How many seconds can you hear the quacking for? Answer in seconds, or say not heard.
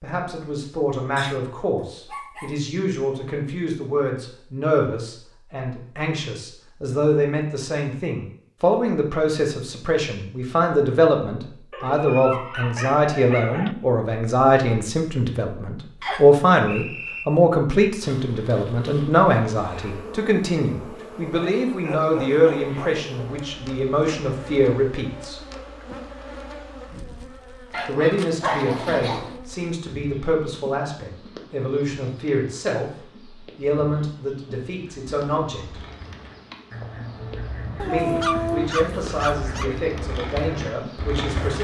7 s.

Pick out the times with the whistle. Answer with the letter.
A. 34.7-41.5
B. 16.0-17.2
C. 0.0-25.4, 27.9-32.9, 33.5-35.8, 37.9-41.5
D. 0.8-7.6
B.